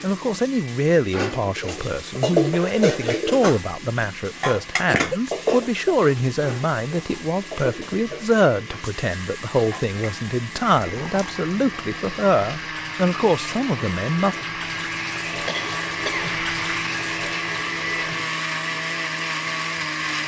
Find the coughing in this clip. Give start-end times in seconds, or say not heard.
4.8-5.3, 15.4-16.3.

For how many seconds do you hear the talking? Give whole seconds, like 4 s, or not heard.
14 s.